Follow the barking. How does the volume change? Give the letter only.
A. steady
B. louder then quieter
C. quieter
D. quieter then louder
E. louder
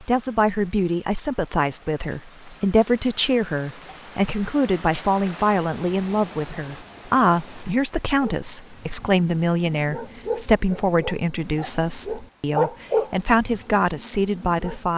B.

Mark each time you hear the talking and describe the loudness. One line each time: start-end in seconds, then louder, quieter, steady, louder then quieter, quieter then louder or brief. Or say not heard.
0.0-14.9 steady.